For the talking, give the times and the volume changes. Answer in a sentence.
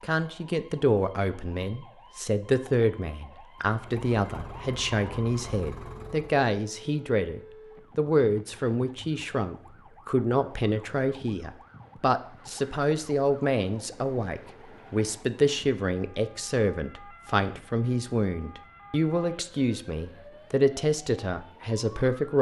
You can hear the talking from 0.0 to 22.3 s, at a steady volume.